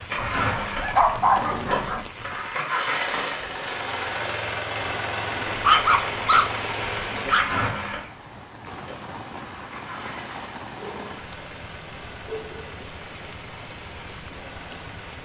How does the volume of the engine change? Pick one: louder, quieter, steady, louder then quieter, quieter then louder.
quieter.